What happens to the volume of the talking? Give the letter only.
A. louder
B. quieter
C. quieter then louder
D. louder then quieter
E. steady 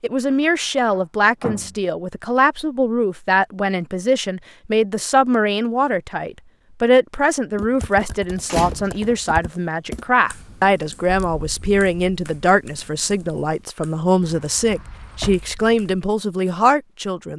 E.